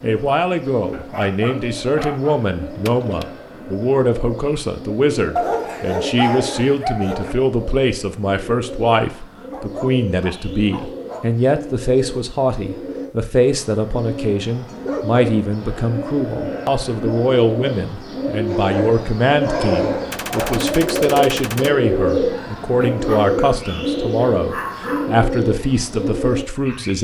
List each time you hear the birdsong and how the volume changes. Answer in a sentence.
You can hear the birdsong from 0.0 to 27.0 s, getting louder.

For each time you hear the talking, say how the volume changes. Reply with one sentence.
The talking can be heard from 0.0 to 27.0 s, at a steady volume.